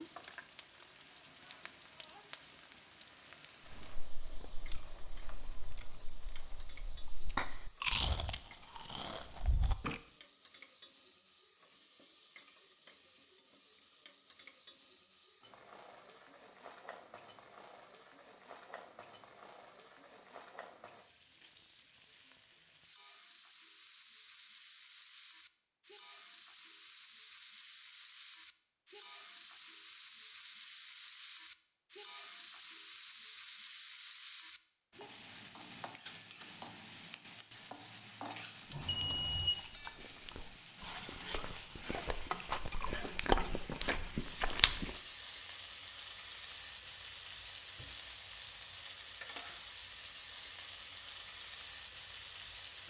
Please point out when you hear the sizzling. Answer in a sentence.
The sizzling can be heard from 0.0 to 52.8 s.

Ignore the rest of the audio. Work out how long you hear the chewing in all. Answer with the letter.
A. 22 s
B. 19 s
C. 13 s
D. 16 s
C.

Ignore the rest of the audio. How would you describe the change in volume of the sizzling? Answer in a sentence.
The loudness of the sizzling goes up.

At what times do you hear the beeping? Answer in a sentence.
The beeping can be heard from 38.7 to 39.5 s.